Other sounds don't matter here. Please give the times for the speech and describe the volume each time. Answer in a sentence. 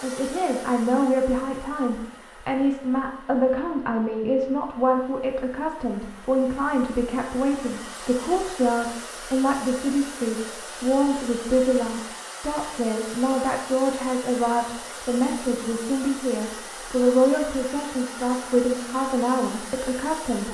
The speech can be heard from 0.0 to 20.4 s, at a steady volume.